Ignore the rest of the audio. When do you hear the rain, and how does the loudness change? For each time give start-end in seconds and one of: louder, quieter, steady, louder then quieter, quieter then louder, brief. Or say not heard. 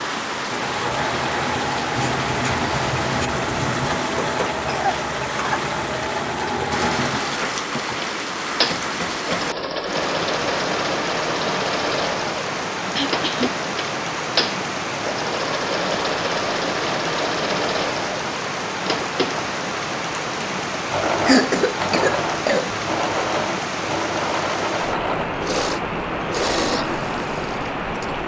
0.0-28.2 steady.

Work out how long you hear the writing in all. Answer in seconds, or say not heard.
2 s.